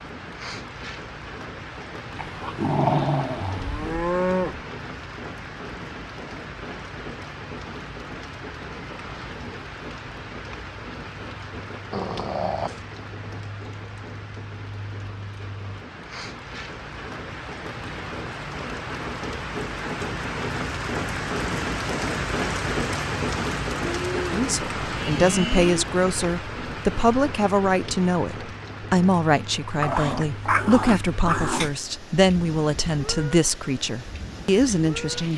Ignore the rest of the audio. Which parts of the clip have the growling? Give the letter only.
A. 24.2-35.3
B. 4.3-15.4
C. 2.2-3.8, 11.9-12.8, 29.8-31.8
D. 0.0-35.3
C.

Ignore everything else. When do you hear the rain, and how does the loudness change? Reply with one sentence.
You can hear the rain from 0.0 to 35.3 s, getting louder then quieter.